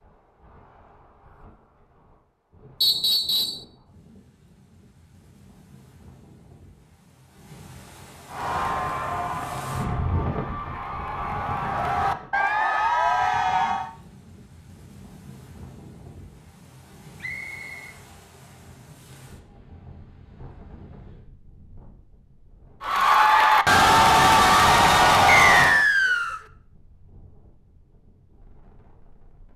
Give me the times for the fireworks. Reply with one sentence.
You can't hear the fireworks here.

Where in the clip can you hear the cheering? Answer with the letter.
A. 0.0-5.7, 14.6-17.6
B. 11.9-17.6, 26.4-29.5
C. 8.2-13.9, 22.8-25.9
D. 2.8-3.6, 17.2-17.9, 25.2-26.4
C.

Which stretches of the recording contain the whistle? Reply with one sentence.
The whistle can be heard from 2.8 to 3.6 s, from 17.2 to 17.9 s and from 25.2 to 26.4 s.